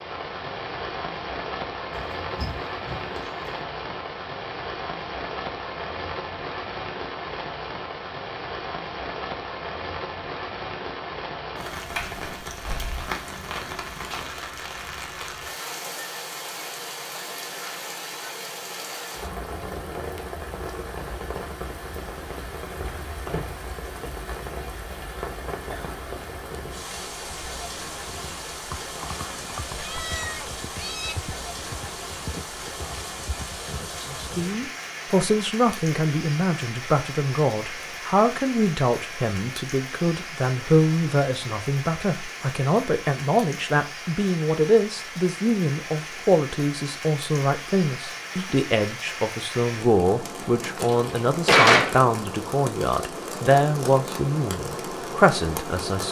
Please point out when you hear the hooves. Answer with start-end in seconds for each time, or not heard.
28.1-34.7.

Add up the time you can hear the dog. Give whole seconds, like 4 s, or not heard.
not heard.